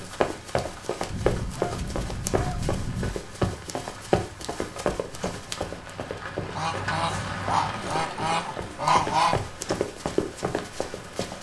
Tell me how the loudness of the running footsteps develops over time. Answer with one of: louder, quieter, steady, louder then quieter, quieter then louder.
quieter then louder.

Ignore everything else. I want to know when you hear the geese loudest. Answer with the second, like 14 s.
9 s.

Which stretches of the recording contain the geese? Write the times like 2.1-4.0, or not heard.
1.1-3.1, 6.5-9.4.